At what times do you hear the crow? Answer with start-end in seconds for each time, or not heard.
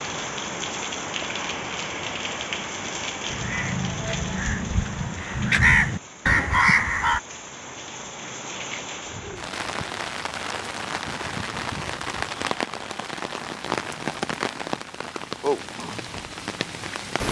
3.2-7.2.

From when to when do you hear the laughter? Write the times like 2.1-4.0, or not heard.
not heard.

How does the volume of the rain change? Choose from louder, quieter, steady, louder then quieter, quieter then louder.
quieter then louder.